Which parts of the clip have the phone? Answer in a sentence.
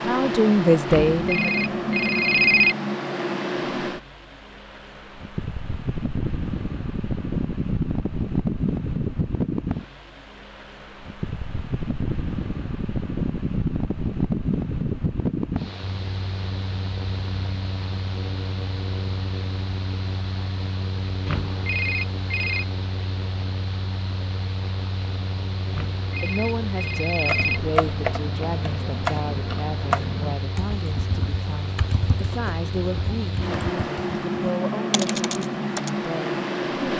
The phone can be heard from 0.8 to 2.8 s, from 21.2 to 22.6 s and from 25.7 to 27.6 s.